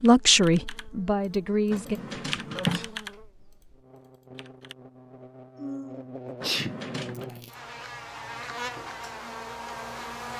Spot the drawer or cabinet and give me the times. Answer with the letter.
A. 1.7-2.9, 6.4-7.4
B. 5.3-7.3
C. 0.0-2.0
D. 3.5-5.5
A.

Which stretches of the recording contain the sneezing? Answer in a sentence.
You can hear the sneezing from 2.5 to 3.0 s and from 5.5 to 7.5 s.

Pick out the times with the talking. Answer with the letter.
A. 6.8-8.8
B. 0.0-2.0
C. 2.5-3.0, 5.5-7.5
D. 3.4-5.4
B.